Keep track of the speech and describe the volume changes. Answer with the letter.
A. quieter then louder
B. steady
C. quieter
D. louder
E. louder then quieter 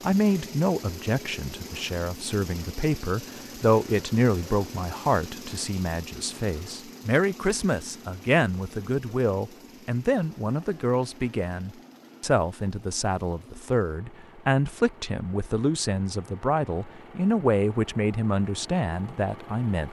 B.